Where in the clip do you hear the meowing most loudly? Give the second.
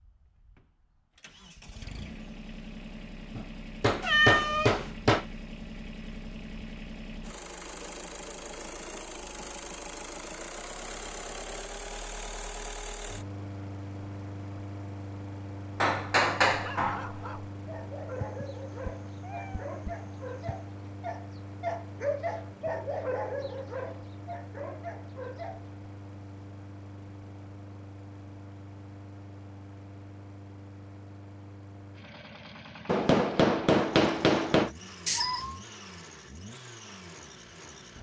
4 s.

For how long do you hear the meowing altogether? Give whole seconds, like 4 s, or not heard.
4 s.